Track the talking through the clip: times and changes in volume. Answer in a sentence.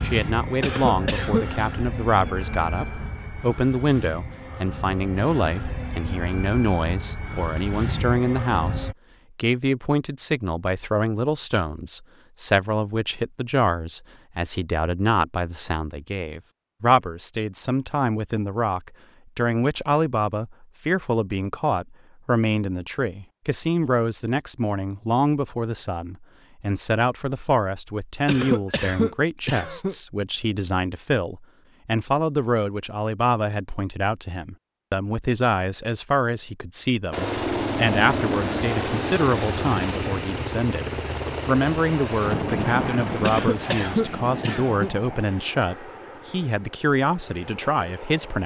The talking can be heard from 0.0 to 48.4 s, at a steady volume.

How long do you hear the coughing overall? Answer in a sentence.
The coughing can be heard for 4 seconds in total.